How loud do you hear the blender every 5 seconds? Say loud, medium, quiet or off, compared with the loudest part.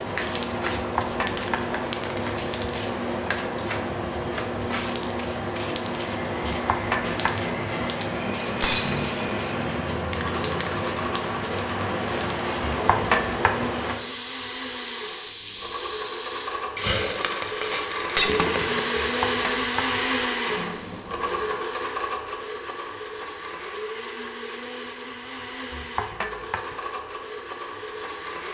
off, medium, medium, loud, loud, medium.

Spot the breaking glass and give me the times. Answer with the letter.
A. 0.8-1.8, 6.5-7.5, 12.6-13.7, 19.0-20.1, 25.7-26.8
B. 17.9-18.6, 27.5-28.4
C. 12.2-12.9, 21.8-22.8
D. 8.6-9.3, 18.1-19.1
D.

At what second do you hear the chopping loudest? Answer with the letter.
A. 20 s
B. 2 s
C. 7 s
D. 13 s
D.